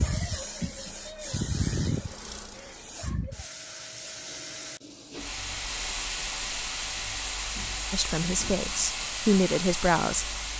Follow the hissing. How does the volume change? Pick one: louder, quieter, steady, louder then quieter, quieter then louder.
quieter then louder.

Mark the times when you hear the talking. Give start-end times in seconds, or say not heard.
7.9-10.3.